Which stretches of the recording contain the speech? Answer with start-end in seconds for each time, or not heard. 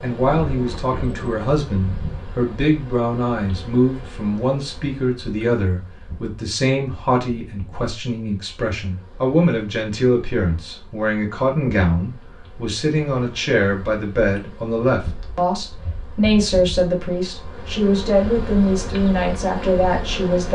0.0-20.4.